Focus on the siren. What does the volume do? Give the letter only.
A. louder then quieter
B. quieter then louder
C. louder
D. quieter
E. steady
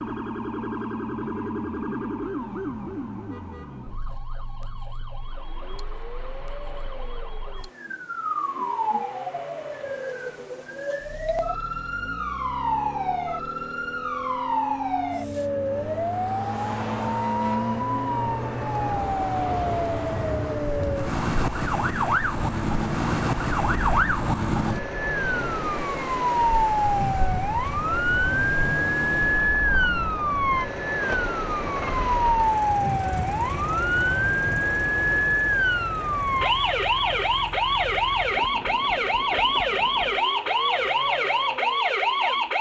C.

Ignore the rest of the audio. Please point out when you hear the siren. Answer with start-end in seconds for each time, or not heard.
0.0-42.5.